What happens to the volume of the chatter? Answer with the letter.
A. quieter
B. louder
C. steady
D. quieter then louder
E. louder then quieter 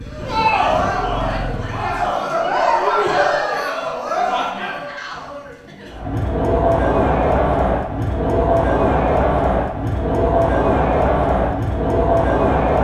C.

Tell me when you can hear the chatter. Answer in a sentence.
You can hear the chatter from 0.0 to 12.7 s.